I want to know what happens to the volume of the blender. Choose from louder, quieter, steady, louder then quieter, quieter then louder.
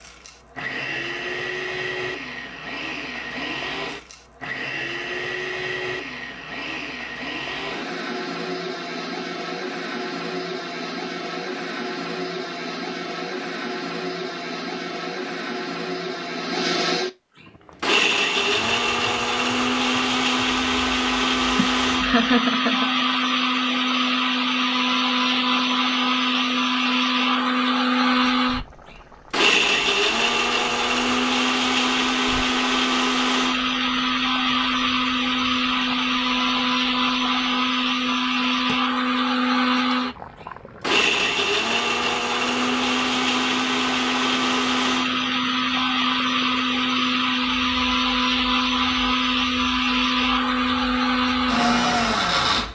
louder.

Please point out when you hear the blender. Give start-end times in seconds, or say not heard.
0.0-52.7.